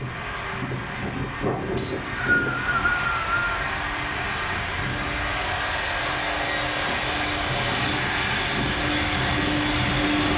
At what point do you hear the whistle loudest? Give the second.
2 s.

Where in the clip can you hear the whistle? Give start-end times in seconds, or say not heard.
1.8-3.6.